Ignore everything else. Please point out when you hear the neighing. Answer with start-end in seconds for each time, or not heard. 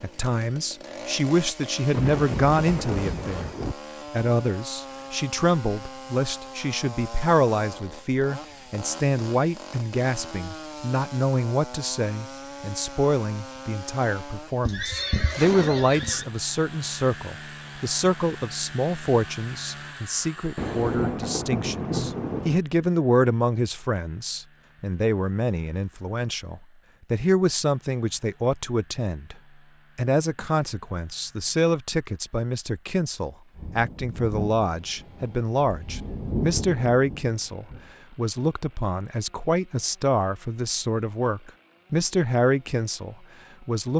14.7-16.2.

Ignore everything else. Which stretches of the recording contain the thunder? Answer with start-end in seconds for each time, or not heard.
1.9-3.8, 20.6-22.6, 33.5-37.9.